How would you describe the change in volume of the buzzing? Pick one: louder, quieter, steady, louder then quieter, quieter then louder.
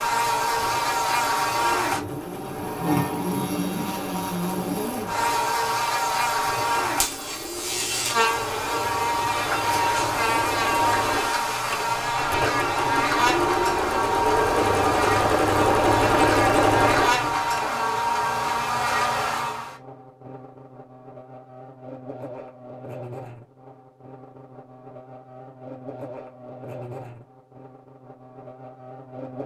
quieter.